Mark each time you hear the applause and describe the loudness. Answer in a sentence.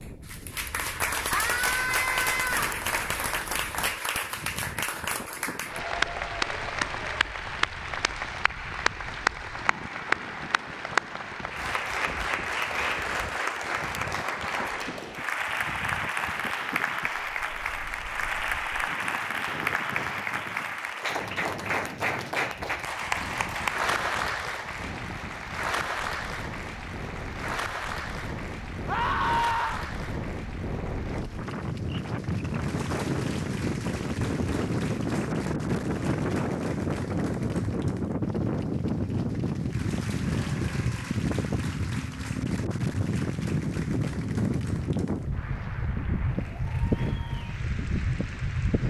You can hear the applause from 0.0 to 48.8 s, getting quieter.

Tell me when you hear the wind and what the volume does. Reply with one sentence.
You can hear the wind from 0.0 to 48.8 s, getting louder.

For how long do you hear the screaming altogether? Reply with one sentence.
You can hear the screaming for 3 seconds altogether.